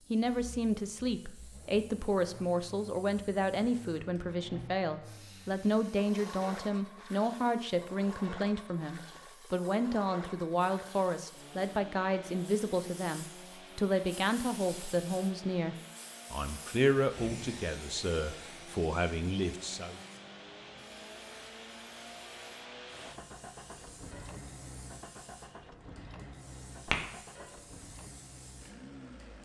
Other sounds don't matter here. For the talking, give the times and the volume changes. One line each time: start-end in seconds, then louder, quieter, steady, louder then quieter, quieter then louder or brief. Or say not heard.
0.1-20.0 steady.